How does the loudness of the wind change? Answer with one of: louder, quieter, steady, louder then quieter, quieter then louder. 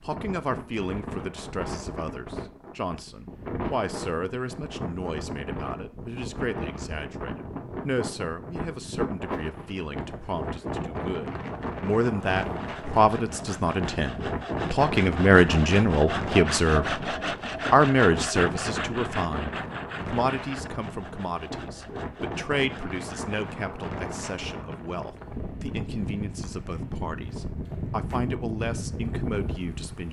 steady.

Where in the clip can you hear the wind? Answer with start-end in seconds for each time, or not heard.
0.0-30.0.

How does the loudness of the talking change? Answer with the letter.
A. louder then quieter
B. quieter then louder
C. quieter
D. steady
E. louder
A.